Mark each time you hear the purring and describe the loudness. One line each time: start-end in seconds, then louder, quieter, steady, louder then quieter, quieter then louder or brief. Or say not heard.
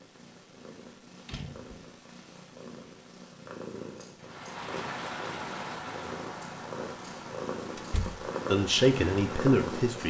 0.0-10.0 louder.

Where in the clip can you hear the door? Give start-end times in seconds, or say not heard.
1.2-1.9, 7.8-8.2.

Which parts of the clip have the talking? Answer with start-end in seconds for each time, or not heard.
8.4-10.0.